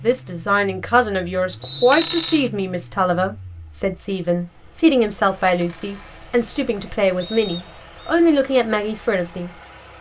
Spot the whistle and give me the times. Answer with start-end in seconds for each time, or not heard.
1.6-2.4, 7.2-8.2.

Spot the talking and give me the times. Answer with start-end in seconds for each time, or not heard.
0.0-9.9.